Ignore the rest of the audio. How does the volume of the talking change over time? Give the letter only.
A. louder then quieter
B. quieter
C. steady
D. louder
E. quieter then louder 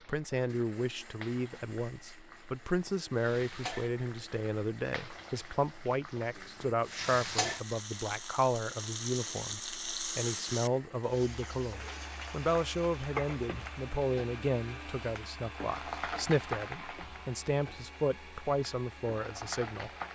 C.